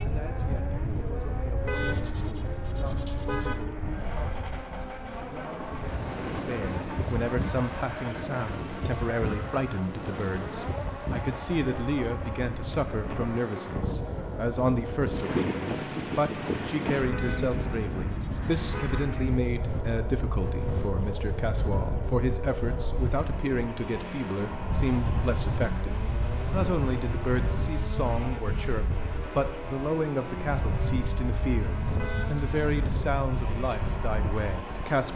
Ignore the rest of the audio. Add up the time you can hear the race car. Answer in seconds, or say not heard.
35 s.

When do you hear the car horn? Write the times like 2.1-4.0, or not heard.
1.6-3.6, 17.1-19.1, 31.9-32.5.